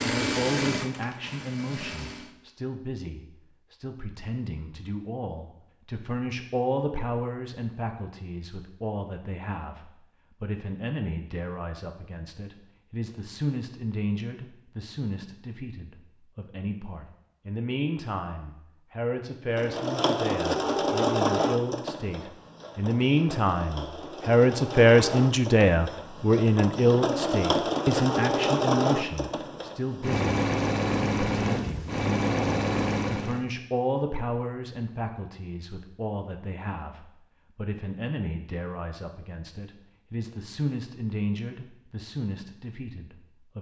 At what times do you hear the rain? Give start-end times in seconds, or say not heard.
not heard.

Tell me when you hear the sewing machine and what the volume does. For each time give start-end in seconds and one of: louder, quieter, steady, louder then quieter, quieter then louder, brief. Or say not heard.
0.0-2.3 brief
19.6-33.5 quieter then louder.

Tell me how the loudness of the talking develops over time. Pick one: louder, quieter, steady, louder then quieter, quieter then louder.
louder then quieter.